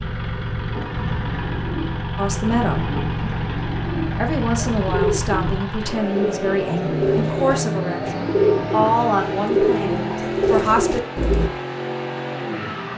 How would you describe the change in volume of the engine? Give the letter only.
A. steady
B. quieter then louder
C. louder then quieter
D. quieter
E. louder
A.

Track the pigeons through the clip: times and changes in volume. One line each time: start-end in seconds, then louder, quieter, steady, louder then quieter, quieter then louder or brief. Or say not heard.
0.7-11.5 louder.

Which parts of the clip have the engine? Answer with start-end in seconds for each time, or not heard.
0.0-12.9.